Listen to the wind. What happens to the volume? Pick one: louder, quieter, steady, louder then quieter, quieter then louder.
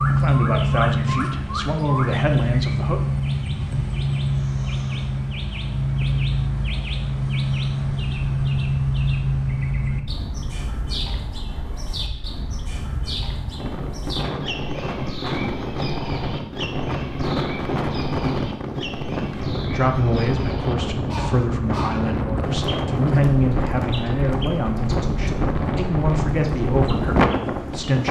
louder.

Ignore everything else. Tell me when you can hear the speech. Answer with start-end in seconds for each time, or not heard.
0.1-3.0, 19.7-28.0.